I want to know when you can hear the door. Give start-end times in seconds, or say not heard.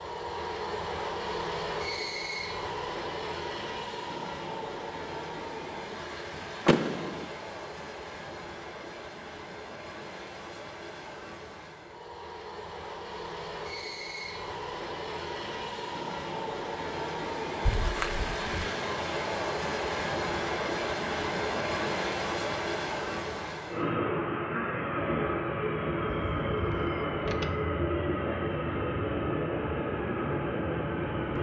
6.7-7.3, 17.6-18.6, 26.1-27.5.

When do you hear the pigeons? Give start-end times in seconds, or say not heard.
not heard.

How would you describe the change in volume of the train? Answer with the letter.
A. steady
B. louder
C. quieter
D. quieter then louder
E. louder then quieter
D.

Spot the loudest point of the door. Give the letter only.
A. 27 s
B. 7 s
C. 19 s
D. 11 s
B.